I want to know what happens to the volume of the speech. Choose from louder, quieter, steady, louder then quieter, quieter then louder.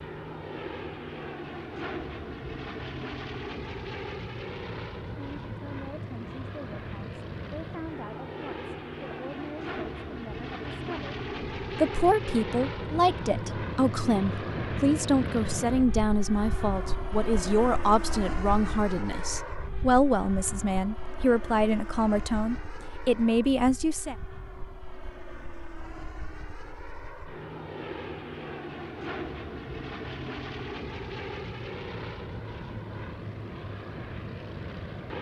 louder.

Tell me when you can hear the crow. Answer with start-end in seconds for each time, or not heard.
not heard.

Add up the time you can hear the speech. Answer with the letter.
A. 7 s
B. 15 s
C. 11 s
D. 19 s
D.